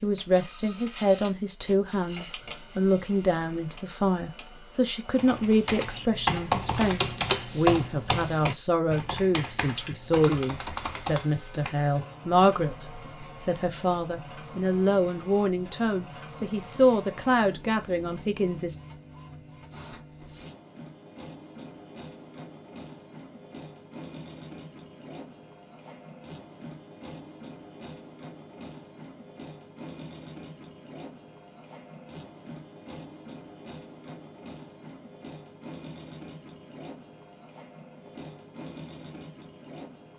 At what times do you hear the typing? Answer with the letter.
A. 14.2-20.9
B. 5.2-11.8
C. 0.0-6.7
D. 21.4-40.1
B.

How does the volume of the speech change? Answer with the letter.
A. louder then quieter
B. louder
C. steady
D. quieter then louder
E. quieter
C.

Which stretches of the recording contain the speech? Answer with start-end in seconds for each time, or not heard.
0.0-18.8.